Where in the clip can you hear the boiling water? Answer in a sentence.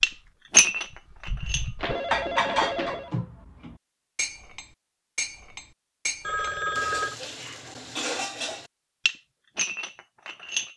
You can't hear the boiling water here.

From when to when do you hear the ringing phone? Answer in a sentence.
The ringing phone can be heard from 1.8 to 3.1 s and from 6.2 to 7.2 s.